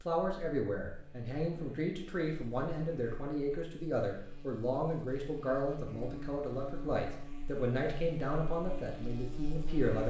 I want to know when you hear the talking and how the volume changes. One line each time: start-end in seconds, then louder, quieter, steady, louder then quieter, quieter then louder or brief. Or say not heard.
0.0-10.0 steady.